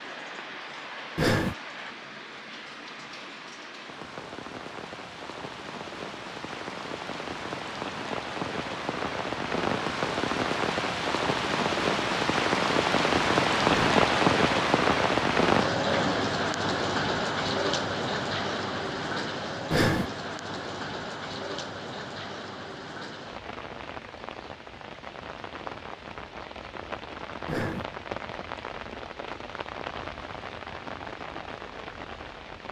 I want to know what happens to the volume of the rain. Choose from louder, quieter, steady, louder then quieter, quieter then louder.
louder then quieter.